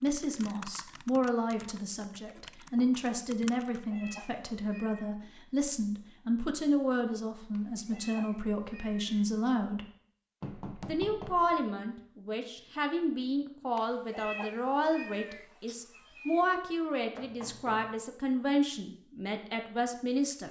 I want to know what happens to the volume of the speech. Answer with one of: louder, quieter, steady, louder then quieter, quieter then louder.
steady.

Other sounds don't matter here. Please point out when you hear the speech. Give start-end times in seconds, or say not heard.
0.0-9.8, 10.8-20.4.